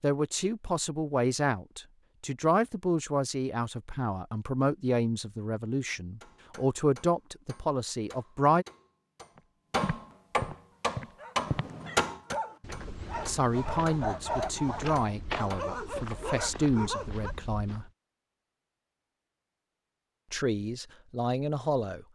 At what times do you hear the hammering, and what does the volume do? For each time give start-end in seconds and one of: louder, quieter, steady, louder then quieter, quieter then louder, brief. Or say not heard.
6.2-16.2 louder then quieter.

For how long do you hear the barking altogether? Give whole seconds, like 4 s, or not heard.
7 s.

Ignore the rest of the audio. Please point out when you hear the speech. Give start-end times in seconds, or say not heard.
0.0-8.7, 13.2-17.9, 20.3-22.1.